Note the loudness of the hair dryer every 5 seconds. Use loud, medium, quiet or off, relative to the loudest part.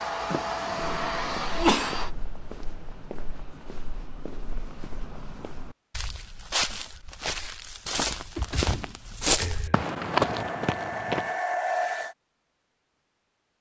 loud, off, loud.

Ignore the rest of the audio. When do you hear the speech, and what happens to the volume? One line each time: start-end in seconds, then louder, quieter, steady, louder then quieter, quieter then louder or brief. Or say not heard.
not heard.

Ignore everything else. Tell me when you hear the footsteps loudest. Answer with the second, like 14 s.
10 s.